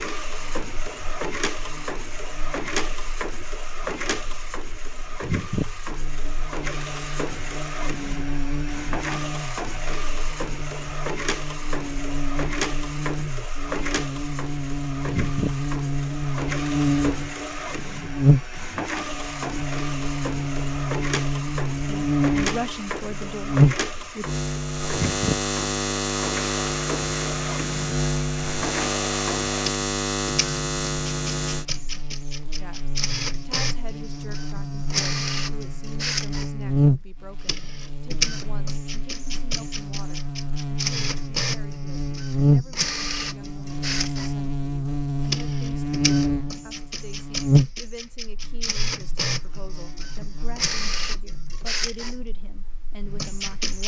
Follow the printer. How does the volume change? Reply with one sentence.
The loudness of the printer stays about the same.